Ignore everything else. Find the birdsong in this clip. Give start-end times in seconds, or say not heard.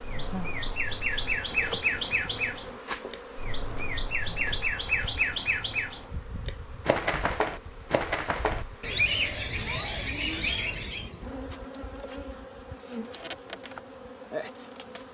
0.0-11.1.